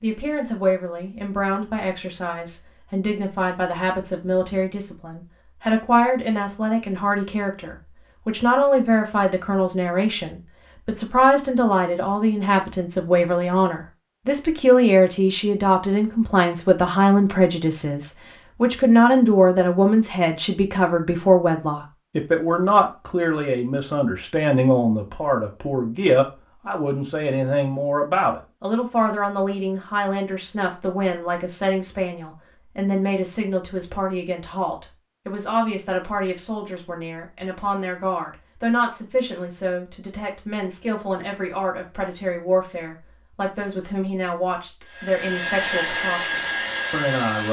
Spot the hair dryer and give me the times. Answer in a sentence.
You can hear the hair dryer from 44.8 to 47.4 s.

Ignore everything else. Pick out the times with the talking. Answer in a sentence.
You can hear the talking from 0.0 to 47.4 s.